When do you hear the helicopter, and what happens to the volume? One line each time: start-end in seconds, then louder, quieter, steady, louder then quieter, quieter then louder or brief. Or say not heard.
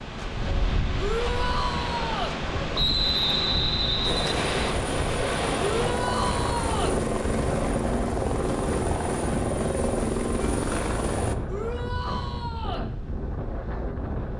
4.0-11.3 steady.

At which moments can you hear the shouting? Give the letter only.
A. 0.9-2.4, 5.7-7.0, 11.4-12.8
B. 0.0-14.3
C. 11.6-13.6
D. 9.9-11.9
A.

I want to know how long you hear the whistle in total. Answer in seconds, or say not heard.
2 s.